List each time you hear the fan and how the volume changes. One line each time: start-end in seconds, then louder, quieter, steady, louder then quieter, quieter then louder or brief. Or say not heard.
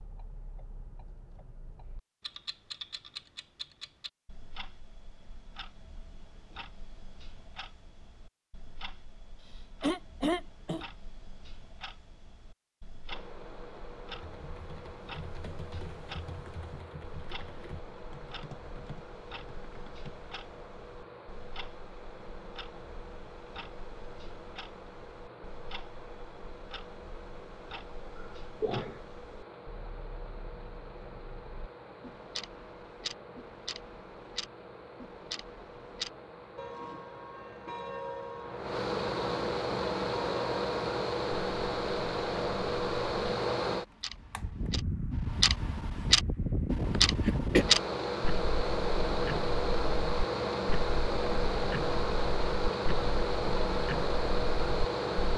13.1-55.3 louder.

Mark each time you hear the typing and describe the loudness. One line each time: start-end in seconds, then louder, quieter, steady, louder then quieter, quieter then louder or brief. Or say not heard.
14.1-20.1 steady.